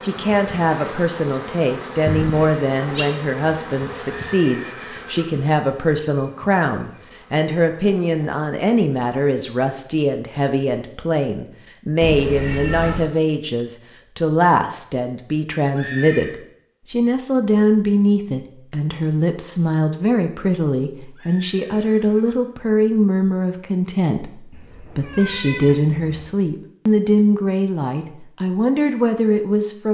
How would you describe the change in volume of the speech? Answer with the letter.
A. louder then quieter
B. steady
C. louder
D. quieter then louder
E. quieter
B.